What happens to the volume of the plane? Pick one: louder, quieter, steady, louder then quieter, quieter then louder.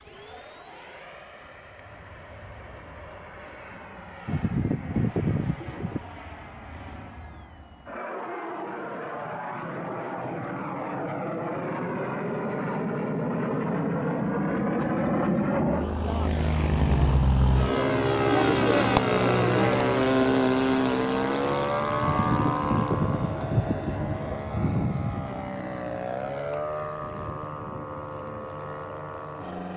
louder then quieter.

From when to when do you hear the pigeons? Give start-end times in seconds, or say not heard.
4.2-6.0, 22.0-24.4.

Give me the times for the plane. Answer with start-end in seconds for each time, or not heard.
0.0-29.7.